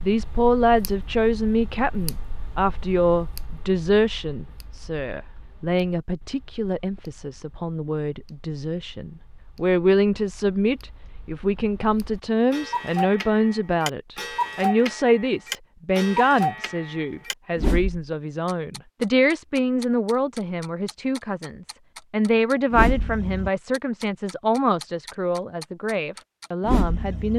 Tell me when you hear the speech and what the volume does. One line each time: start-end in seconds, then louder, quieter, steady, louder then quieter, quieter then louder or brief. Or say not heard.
0.0-27.3 steady.